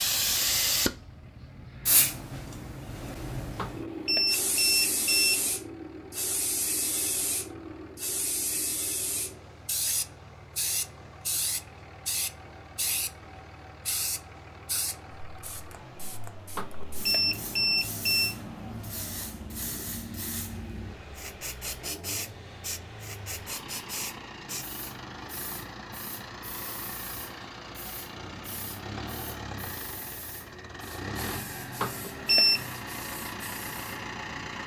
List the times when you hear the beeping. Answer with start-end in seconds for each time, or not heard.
3.5-5.5, 16.6-18.4, 31.8-32.6.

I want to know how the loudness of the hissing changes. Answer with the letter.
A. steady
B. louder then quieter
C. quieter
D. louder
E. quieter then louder
C.